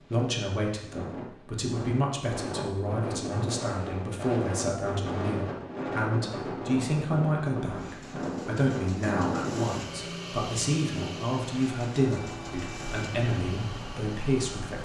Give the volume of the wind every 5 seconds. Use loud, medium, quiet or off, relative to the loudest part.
loud, loud, medium.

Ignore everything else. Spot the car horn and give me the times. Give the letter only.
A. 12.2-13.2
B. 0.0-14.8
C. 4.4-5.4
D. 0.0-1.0
A.